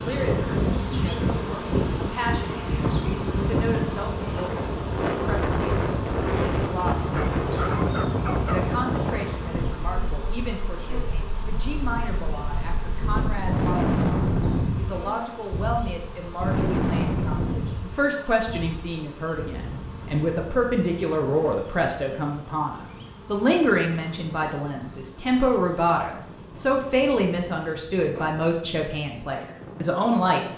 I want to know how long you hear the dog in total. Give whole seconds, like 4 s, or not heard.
2 s.